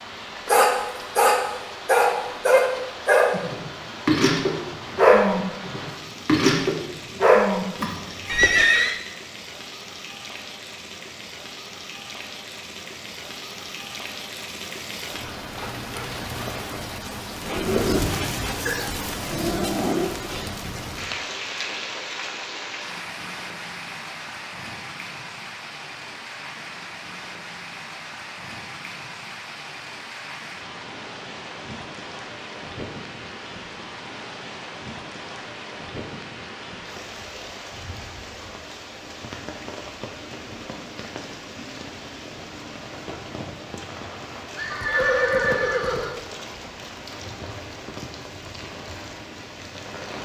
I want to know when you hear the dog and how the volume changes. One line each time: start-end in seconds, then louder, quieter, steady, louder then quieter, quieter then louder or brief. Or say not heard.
0.5-8.3 steady.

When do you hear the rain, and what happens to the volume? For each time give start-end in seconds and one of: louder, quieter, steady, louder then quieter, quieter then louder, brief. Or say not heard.
0.0-50.2 louder then quieter.